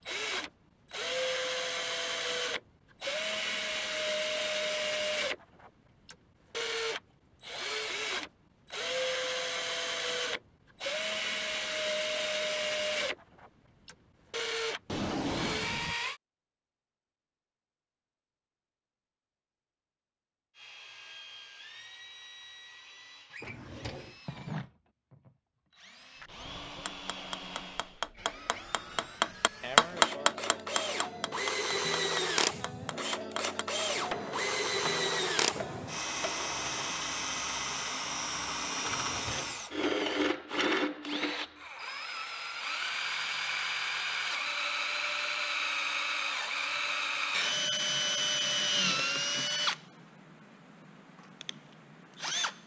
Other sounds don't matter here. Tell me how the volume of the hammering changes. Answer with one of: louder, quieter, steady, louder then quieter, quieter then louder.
louder then quieter.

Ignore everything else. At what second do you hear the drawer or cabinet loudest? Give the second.
15 s.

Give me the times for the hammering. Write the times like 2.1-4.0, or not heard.
26.8-37.0.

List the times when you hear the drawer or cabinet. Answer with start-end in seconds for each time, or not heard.
14.8-15.9, 23.3-24.1, 38.8-39.6.